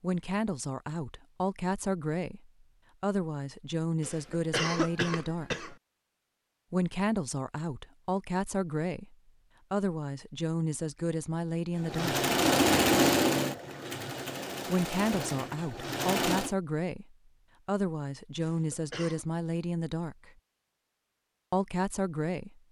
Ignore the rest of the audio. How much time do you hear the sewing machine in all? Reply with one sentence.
The sewing machine can be heard for 5 seconds in total.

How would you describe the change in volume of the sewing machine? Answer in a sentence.
The volume of the sewing machine goes down.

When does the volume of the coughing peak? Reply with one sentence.
The volume of the coughing peaks at 5 seconds.